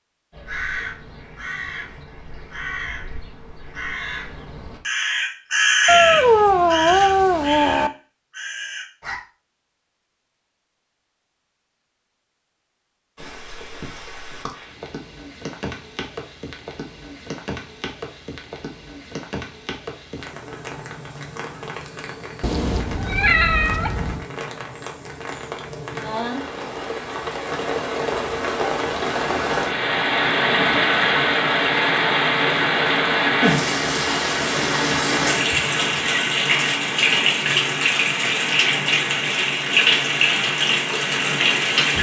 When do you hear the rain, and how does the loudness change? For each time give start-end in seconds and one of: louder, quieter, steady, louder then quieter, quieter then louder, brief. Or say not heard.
13.2-41.9 louder.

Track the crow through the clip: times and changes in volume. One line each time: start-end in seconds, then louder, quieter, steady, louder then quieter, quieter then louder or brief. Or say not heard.
0.3-9.2 louder then quieter.